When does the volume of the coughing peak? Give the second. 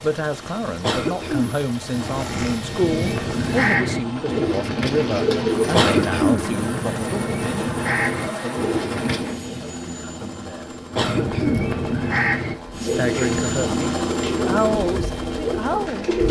6 s.